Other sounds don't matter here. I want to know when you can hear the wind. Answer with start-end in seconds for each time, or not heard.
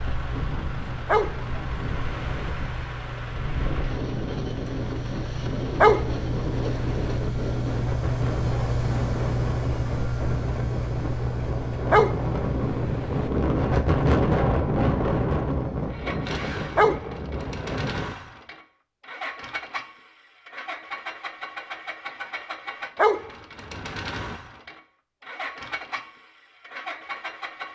0.0-18.1.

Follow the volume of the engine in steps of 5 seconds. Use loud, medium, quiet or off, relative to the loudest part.
medium, loud, loud, medium, medium, medium.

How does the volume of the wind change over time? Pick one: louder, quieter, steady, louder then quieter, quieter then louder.
louder.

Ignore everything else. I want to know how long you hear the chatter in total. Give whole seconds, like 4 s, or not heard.
not heard.